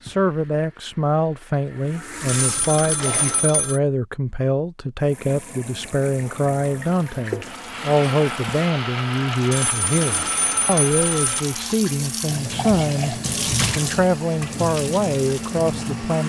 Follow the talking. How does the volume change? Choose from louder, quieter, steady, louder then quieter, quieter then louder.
steady.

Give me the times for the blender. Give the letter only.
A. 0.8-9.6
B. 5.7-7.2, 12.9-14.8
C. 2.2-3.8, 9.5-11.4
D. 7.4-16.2
D.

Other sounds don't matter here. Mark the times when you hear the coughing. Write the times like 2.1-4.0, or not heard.
not heard.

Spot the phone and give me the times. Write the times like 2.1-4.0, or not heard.
2.2-3.8, 9.5-11.4.